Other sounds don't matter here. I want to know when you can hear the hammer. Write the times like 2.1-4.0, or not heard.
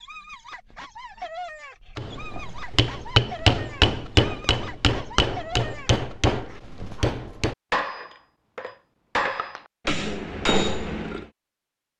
1.9-11.2.